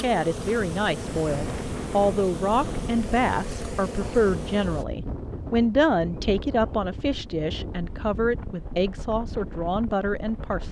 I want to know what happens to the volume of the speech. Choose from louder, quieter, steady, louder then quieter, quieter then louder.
steady.